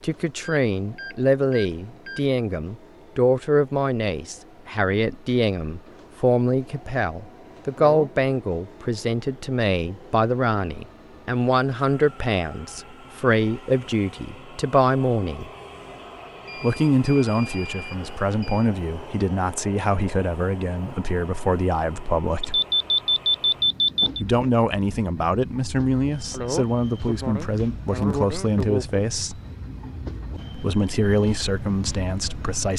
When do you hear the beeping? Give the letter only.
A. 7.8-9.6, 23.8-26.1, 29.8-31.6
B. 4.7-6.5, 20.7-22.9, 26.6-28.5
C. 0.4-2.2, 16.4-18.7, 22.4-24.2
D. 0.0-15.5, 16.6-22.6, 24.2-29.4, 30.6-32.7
C.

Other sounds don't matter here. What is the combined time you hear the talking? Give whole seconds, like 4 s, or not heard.
29 s.